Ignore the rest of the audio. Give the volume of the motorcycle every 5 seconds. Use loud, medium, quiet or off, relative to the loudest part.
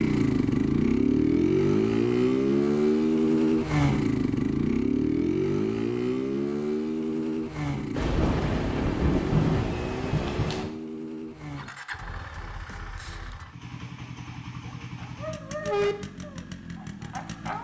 loud, medium, quiet, quiet.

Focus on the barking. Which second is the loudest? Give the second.
16 s.